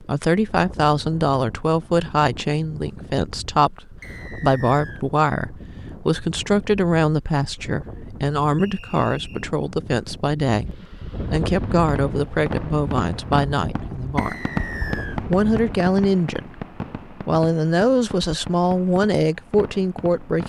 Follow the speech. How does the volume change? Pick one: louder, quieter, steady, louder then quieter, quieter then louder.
steady.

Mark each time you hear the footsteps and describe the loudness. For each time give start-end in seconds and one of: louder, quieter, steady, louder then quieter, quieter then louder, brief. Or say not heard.
not heard.